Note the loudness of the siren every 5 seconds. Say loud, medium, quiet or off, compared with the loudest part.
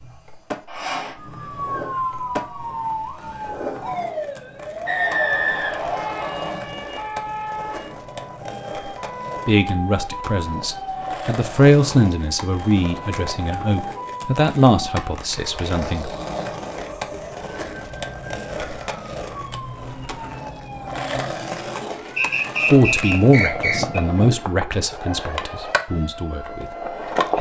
loud, loud, loud, medium, medium, medium.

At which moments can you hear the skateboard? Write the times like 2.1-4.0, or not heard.
0.0-27.3.